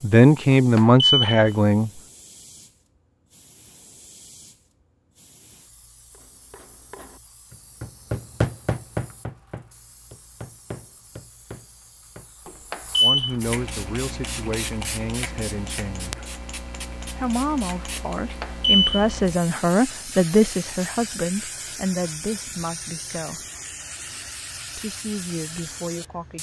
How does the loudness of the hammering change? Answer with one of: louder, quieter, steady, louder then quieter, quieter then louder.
louder then quieter.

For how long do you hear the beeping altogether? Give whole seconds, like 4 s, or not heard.
2 s.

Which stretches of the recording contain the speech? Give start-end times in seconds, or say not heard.
0.0-1.9, 13.0-16.1, 17.1-23.4, 24.8-26.3.